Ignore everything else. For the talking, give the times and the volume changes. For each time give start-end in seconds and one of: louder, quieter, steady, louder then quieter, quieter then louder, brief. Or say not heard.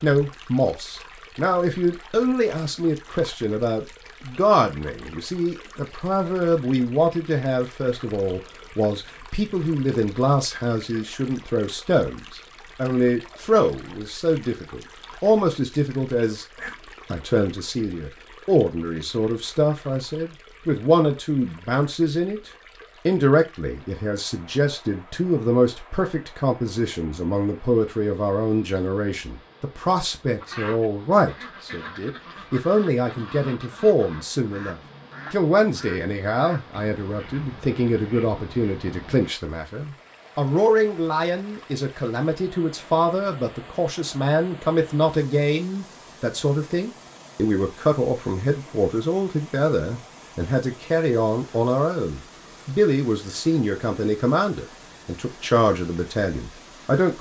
0.0-57.1 steady.